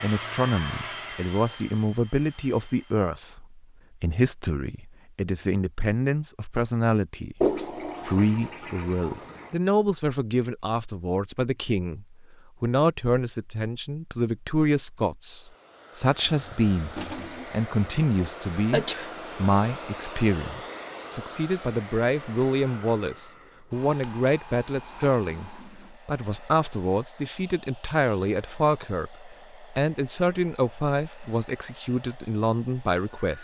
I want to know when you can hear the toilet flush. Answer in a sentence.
The toilet flush can be heard from 7.4 to 9.5 s, from 16.2 to 17.5 s and from 24.1 to 26.0 s.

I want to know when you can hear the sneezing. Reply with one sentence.
The sneezing can be heard from 18.2 to 19.1 s.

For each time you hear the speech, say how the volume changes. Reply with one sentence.
You can hear the speech from 0.0 to 33.3 s, at a steady volume.